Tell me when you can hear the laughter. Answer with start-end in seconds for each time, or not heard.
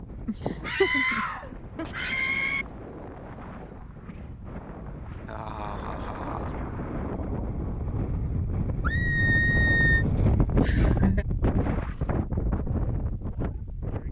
0.2-2.1, 5.2-6.5, 10.2-11.2.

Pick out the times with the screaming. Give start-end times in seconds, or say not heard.
0.7-2.6, 8.8-10.1.